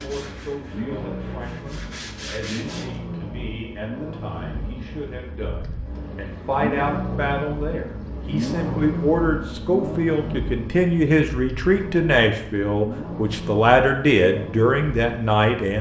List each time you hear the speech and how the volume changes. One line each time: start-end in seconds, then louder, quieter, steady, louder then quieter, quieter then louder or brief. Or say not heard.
0.0-15.7 louder.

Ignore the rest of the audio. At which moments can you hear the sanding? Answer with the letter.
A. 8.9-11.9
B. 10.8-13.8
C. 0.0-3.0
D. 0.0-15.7
C.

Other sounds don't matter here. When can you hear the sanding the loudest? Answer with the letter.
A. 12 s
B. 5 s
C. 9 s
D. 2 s
D.